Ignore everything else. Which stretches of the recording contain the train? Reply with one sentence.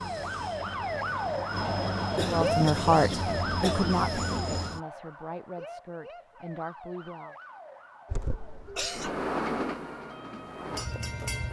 The train can be heard from 0.0 to 4.8 s and from 8.9 to 11.4 s.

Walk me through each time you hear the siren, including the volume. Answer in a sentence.
You can hear the siren from 0.0 to 11.4 s, getting quieter.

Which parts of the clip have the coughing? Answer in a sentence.
The coughing can be heard from 2.1 to 4.0 s and from 8.1 to 9.1 s.